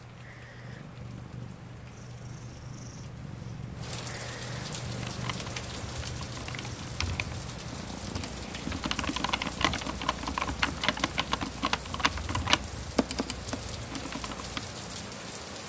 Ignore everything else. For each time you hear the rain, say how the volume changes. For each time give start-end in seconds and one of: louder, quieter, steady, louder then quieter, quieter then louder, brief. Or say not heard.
0.0-15.6 louder.